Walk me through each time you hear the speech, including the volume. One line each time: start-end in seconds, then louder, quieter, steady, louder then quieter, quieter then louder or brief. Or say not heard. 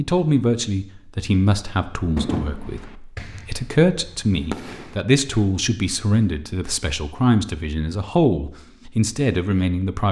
0.0-10.0 steady.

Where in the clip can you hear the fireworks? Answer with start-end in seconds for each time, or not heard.
2.1-5.5.